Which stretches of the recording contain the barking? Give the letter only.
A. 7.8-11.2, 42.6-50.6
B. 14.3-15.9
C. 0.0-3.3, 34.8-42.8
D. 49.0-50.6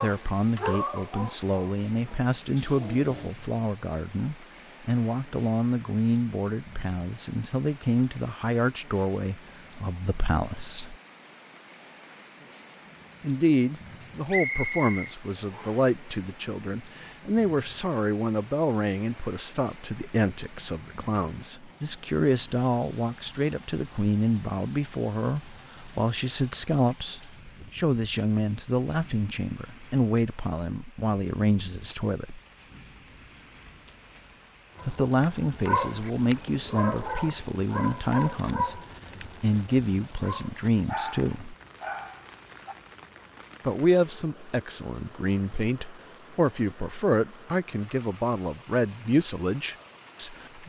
C.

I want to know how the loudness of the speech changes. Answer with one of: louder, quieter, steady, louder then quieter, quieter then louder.
steady.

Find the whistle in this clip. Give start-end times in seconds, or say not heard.
14.3-15.9.